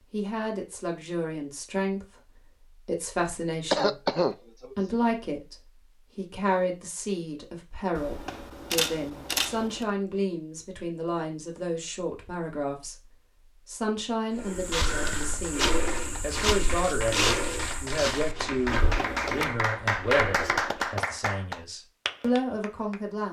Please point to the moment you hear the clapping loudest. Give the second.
20 s.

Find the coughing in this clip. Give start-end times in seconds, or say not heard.
3.7-4.8.